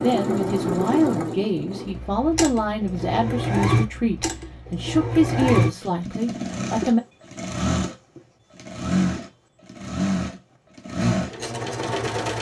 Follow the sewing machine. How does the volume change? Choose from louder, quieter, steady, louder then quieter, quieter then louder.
steady.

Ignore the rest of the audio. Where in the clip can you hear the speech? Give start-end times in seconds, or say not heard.
0.0-7.0.